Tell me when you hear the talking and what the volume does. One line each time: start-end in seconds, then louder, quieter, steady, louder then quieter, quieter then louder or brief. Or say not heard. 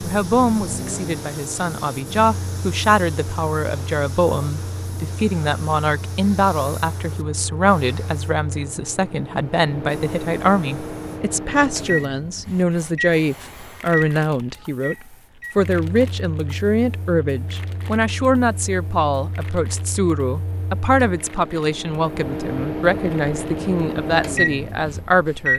0.0-14.9 steady
15.6-25.5 steady.